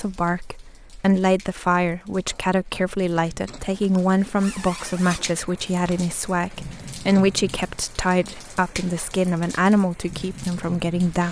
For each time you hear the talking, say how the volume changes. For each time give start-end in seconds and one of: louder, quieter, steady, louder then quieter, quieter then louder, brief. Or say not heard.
0.0-11.2 steady.